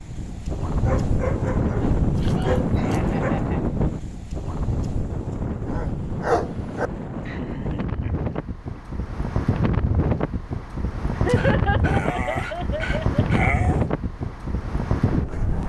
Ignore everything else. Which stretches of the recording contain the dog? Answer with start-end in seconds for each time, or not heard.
0.8-3.4, 5.7-6.9, 11.2-13.8.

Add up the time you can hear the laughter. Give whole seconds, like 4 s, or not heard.
5 s.